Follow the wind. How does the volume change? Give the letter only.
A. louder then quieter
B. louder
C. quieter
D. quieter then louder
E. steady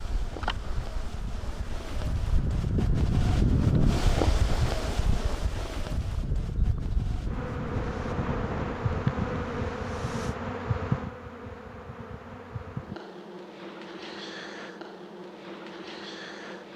A.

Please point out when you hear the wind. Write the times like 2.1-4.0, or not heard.
0.0-10.3.